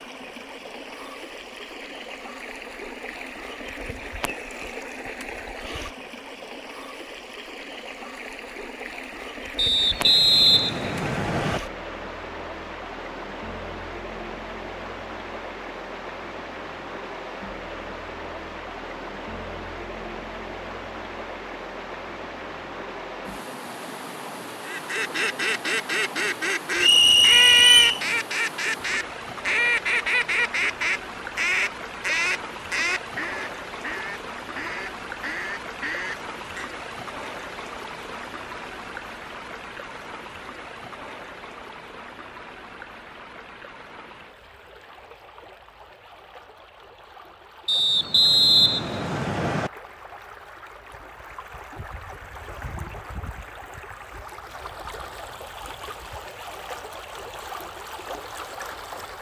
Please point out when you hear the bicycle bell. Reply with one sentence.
You can't hear the bicycle bell here.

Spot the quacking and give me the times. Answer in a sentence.
The quacking can be heard from 24.6 to 36.7 s.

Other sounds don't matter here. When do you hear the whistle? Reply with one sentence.
The whistle can be heard from 9.6 to 11.6 s, from 26.8 to 28.1 s and from 47.6 to 49.7 s.